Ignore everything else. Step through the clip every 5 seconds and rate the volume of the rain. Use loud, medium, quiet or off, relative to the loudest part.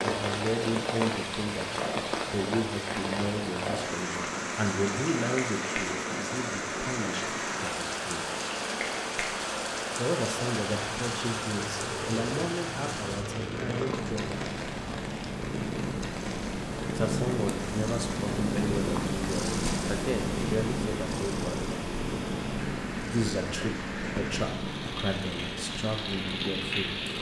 loud, loud, loud, medium, medium, loud.